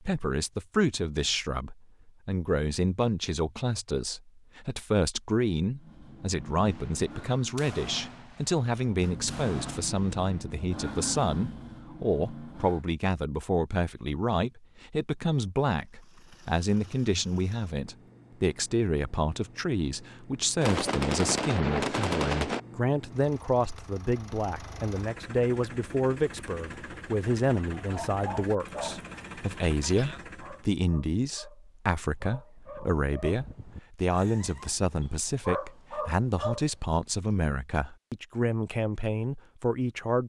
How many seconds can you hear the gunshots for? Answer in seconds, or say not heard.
6 s.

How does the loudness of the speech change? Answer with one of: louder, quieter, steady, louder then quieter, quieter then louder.
steady.